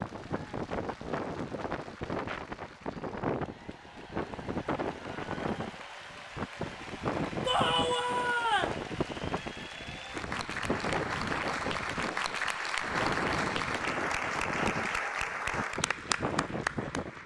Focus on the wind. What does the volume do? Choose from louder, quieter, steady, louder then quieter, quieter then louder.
steady.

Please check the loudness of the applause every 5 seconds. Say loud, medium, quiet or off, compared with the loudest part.
quiet, medium, loud, loud.